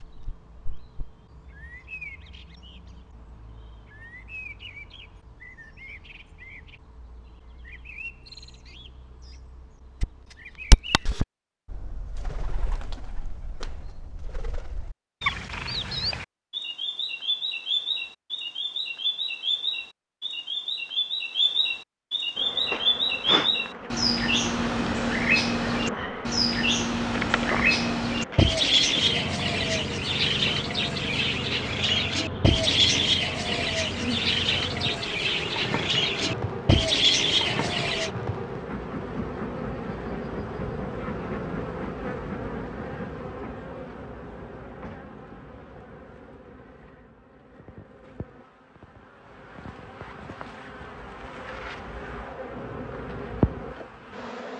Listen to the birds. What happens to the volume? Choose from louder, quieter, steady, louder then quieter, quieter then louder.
louder.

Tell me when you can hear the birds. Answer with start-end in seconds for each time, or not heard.
0.0-38.1.